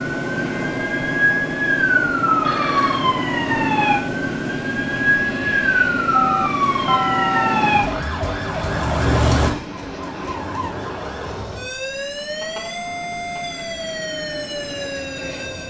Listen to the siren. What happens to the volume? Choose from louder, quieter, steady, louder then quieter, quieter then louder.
quieter.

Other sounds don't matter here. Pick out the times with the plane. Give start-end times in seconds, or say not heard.
0.0-15.6.